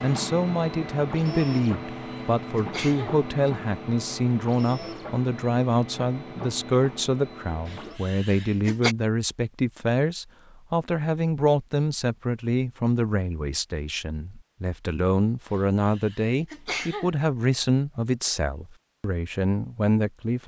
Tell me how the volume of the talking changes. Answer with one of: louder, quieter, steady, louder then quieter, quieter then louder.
steady.